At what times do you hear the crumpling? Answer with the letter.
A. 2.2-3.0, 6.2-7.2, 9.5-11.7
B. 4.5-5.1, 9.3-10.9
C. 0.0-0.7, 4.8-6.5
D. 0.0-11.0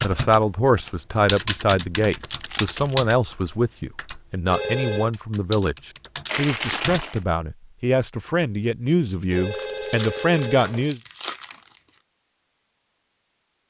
A.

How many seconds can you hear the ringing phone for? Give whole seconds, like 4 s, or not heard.
2 s.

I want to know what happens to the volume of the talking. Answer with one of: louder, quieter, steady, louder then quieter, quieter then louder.
steady.